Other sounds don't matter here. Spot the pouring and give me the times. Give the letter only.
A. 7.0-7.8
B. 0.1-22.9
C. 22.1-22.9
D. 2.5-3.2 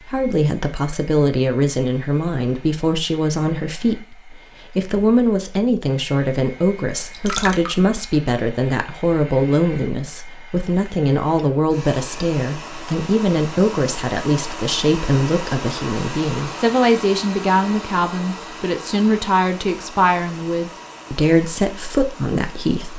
A.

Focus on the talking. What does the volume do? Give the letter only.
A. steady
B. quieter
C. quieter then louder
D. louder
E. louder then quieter
A.